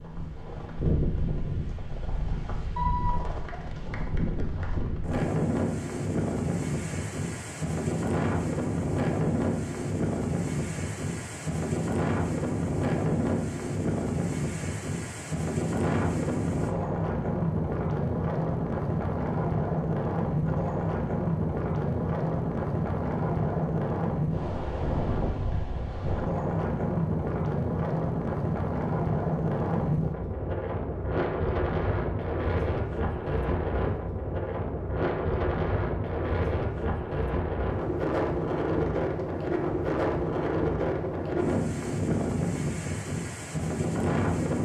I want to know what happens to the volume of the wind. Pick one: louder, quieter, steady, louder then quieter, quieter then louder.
steady.